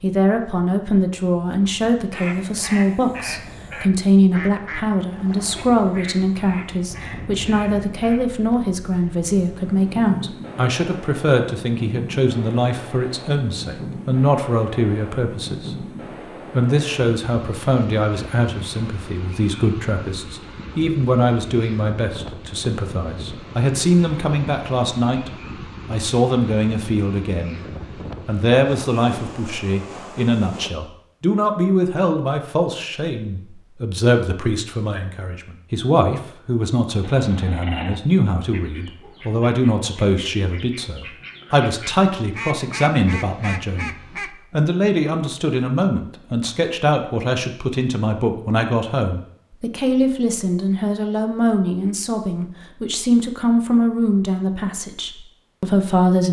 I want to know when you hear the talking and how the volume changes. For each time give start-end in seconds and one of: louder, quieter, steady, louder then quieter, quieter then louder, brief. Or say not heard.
0.0-27.6 steady
28.2-56.2 steady.